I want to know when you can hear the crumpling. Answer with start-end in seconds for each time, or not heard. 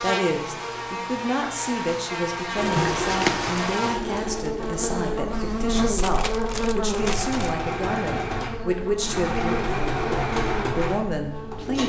2.8-3.5, 6.0-7.5.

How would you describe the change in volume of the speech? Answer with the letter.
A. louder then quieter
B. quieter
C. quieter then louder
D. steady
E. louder
D.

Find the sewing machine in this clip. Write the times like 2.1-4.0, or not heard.
2.5-11.8.